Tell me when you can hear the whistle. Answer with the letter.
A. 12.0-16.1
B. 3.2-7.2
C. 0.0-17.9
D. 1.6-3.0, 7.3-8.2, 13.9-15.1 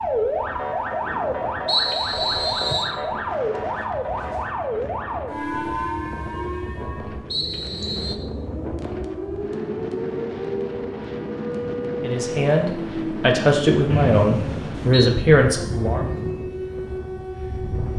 D.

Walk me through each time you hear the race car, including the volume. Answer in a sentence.
The race car can't be heard in this clip.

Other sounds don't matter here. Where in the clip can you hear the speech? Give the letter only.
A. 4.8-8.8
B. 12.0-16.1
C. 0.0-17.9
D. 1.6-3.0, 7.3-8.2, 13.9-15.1
B.